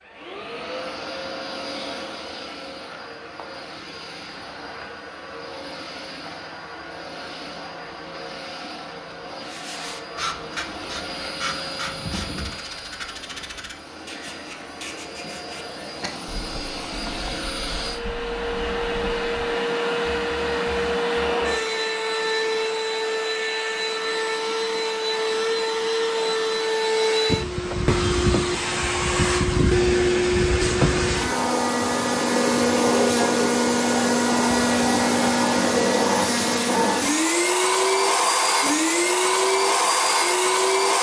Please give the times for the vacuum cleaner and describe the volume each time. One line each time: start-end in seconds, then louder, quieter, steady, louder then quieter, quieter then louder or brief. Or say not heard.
0.0-40.9 louder.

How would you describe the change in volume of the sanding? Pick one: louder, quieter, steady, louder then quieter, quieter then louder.
quieter.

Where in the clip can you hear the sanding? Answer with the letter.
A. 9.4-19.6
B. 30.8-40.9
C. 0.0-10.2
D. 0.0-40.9
A.